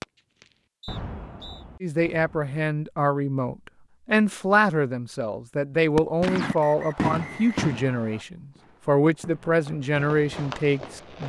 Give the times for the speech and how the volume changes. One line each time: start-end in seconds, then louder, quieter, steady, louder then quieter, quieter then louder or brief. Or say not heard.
1.8-11.2 steady.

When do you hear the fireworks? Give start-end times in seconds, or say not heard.
0.0-2.5, 6.0-11.2.